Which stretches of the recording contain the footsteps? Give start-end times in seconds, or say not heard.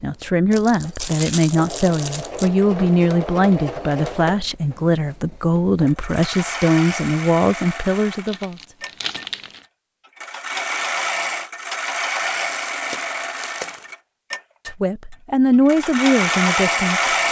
not heard.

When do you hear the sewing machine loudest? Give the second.
17 s.